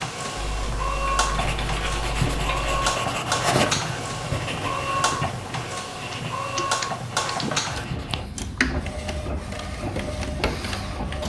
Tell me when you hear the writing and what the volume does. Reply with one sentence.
You can hear the writing from 1.3 to 8.2 s, getting quieter.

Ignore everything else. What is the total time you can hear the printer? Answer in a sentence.
You can hear the printer for 11 seconds altogether.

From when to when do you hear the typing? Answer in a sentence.
You can hear the typing from 0.3 to 2.8 s and from 6.1 to 7.6 s.